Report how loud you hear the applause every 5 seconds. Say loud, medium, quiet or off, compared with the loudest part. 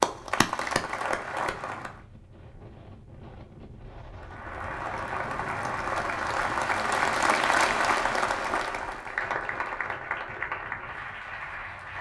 loud, loud, medium.